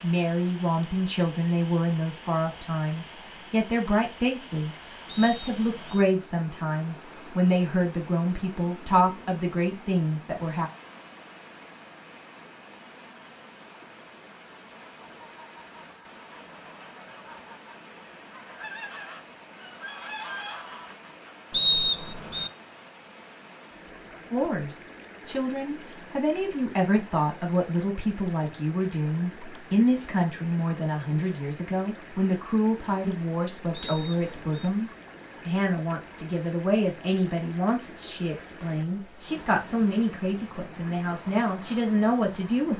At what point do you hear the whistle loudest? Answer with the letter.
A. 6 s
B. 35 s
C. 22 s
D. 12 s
C.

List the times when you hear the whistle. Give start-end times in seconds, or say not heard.
5.0-6.0, 21.5-22.5, 33.7-34.7.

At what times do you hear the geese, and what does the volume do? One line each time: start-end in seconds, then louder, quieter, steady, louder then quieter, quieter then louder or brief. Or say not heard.
15.1-21.4 louder.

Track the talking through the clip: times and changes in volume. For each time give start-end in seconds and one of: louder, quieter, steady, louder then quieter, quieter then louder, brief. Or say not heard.
0.0-10.7 steady
24.3-42.7 steady.